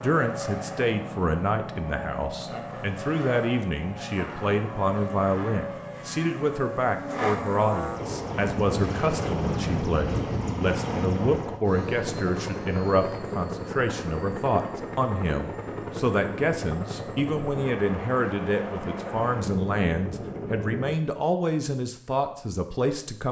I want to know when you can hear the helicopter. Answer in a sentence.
The helicopter can be heard from 0.0 to 20.9 s.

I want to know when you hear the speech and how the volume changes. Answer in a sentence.
You can hear the speech from 0.0 to 23.2 s, at a steady volume.